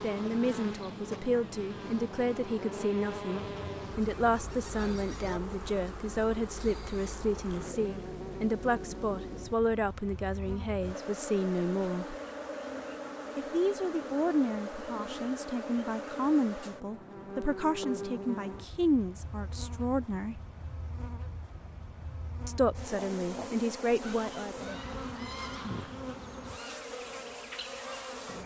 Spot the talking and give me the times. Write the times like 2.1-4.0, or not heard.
0.0-12.2, 13.3-20.4, 22.4-24.6.